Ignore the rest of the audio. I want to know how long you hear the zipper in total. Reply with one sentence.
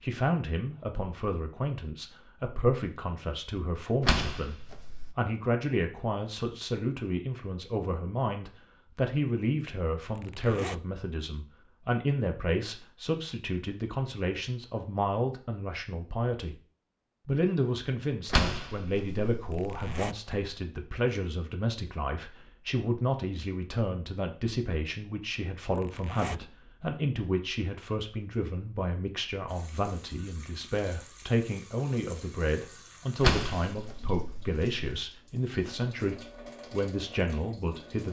You can hear the zipper for 2 seconds altogether.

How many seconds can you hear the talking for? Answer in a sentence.
You can hear the talking for 37 seconds altogether.